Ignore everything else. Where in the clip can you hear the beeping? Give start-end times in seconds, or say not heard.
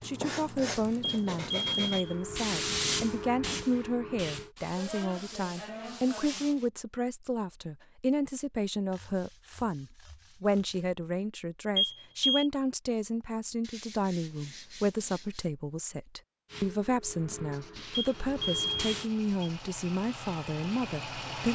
1.0-2.1, 11.8-12.4, 17.9-19.5.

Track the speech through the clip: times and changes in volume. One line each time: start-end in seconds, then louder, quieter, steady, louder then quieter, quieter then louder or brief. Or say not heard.
0.0-21.5 steady.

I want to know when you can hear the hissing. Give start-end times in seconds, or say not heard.
2.0-4.5, 16.4-19.1.